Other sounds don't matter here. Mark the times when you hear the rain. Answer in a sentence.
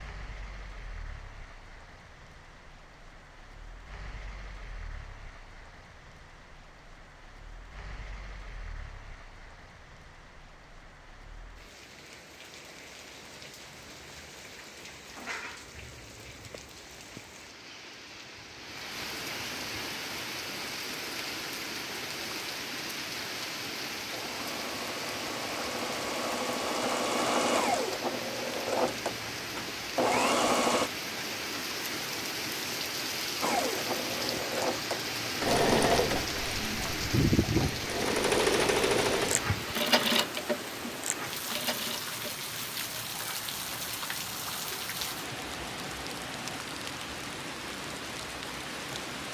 You can hear the rain from 0.0 to 49.2 s.